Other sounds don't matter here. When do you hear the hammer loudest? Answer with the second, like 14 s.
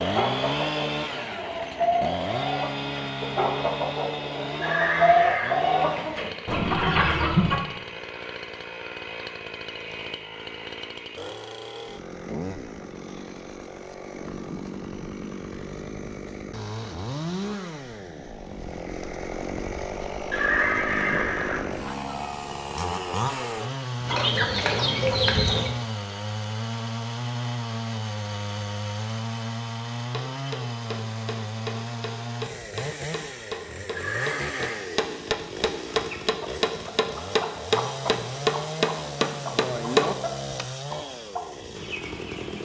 40 s.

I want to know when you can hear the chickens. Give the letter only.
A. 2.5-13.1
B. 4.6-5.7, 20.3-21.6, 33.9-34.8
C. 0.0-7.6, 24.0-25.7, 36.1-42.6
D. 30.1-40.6
C.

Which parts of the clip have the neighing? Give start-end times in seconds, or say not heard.
4.6-5.7, 20.3-21.6, 33.9-34.8.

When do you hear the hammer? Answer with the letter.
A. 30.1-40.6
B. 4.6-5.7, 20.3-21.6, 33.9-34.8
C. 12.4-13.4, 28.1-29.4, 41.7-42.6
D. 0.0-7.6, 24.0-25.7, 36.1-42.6
A.